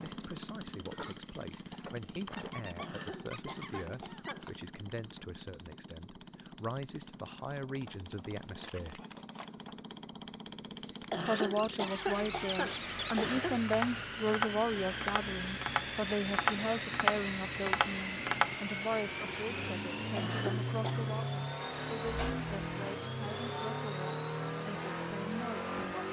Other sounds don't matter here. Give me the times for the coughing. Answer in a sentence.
You can hear the coughing from 2.8 to 4.5 s, from 11.1 to 13.6 s and from 20.1 to 21.1 s.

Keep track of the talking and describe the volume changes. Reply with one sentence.
The loudness of the talking goes up, then down.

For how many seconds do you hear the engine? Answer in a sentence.
The engine can be heard for 26 seconds in total.